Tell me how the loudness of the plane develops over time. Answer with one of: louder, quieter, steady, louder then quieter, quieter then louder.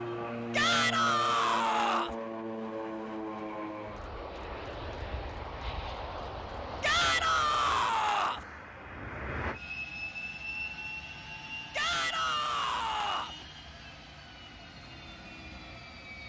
quieter.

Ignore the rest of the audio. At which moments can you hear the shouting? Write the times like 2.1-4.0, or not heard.
0.5-2.1, 6.8-8.4, 11.7-13.3.